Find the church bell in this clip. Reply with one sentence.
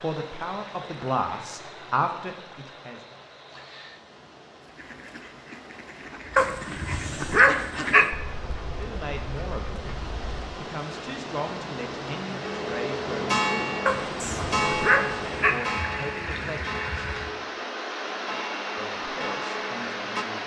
You can hear the church bell from 12.4 to 20.2 s.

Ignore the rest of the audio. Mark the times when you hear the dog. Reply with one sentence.
The dog can be heard from 6.3 to 8.1 s and from 13.8 to 15.6 s.